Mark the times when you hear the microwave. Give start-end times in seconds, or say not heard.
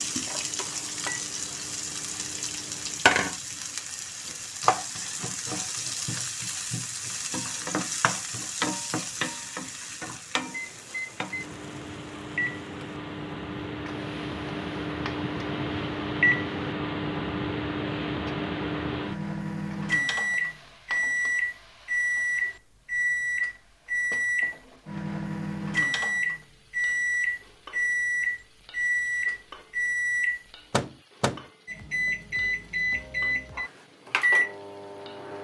0.0-3.0, 10.5-35.3.